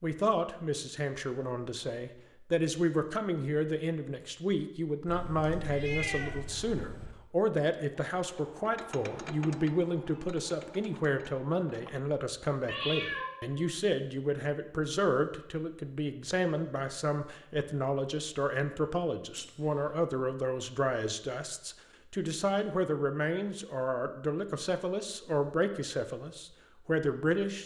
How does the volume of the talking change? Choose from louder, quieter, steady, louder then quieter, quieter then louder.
steady.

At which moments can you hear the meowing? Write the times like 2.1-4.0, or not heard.
5.0-7.1, 12.7-13.7, 19.4-19.9.